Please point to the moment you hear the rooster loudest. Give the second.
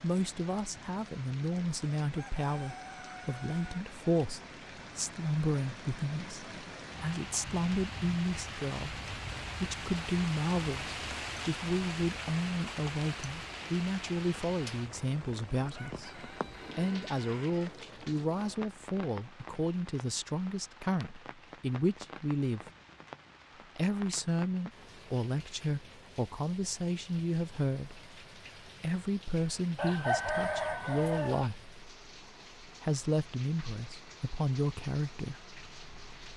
30 s.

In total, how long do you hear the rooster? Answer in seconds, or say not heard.
5 s.